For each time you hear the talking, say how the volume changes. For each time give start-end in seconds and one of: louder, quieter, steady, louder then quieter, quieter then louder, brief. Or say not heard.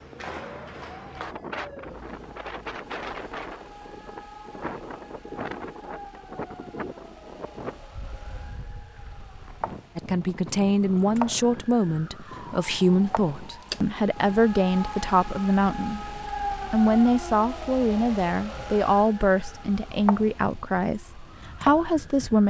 9.9-22.4 steady.